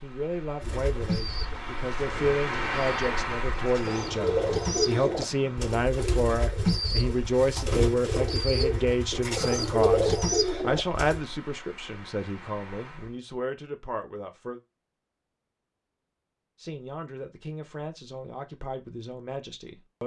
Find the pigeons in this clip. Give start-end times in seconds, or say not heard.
0.6-11.2.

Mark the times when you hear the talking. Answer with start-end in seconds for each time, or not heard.
0.0-14.6, 16.6-20.0.